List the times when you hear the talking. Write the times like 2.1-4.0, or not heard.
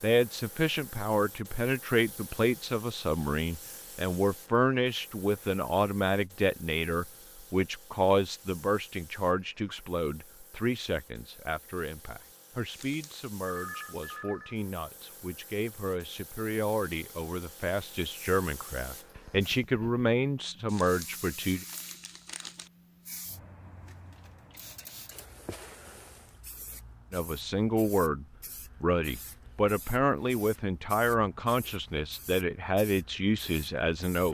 0.0-21.6, 27.1-34.2.